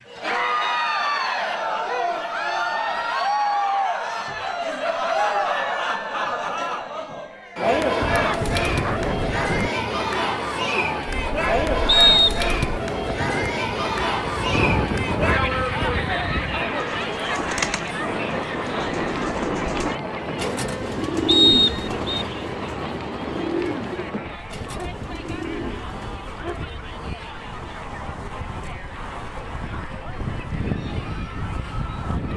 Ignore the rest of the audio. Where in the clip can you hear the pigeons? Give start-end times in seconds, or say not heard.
16.8-26.6.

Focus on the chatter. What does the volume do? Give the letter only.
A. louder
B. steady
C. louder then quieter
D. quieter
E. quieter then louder
D.